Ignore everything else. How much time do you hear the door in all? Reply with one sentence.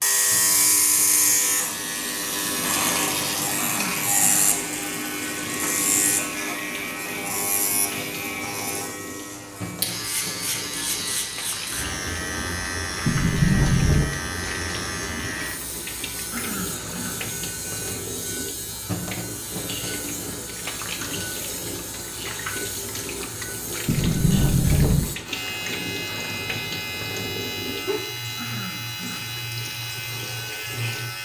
The door can be heard for 2 seconds in total.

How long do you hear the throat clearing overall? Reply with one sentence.
The throat clearing can be heard for 3 seconds in total.